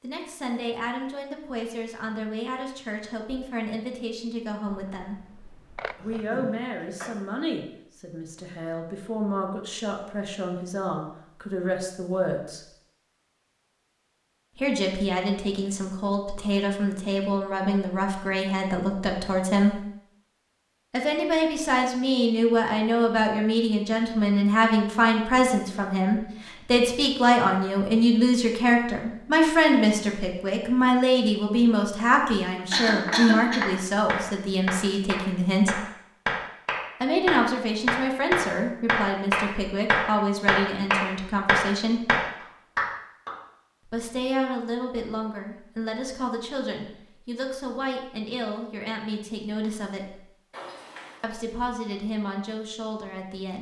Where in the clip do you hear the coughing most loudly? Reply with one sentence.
The volume of the coughing peaks at 33 seconds.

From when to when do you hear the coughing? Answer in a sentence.
You can hear the coughing from 6.0 to 7.1 s, from 32.2 to 33.6 s and from 50.5 to 51.2 s.